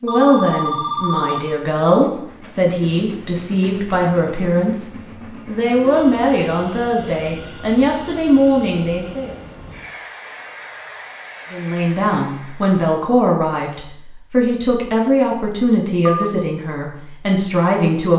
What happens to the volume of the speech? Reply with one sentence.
The volume of the speech stays about the same.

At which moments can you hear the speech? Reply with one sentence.
You can hear the speech from 0.0 to 9.3 s and from 11.5 to 18.1 s.